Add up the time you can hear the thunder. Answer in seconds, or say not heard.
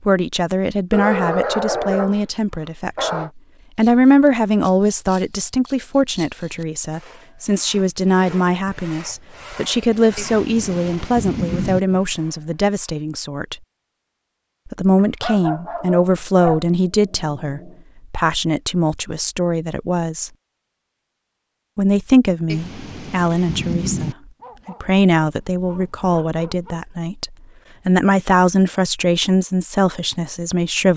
3 s.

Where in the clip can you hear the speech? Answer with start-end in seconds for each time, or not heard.
0.1-13.6, 14.7-20.3, 21.8-30.9.